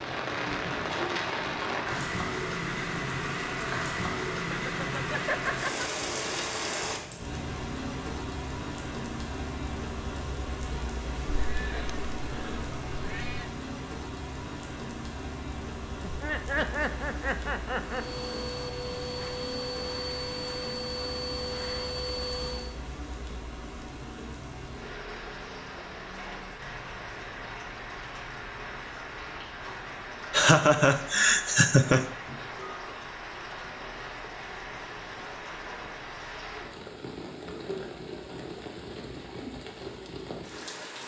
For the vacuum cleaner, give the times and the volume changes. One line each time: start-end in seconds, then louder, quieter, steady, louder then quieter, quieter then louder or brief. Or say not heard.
17.9-22.8 steady.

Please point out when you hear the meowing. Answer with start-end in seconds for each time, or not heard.
11.2-13.4.